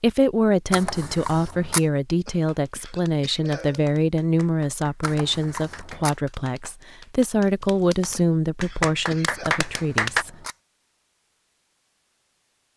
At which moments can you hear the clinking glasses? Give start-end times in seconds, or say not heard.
not heard.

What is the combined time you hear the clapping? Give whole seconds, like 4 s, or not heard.
8 s.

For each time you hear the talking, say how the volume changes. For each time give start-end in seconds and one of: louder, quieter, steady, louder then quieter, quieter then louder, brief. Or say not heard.
0.0-10.3 steady.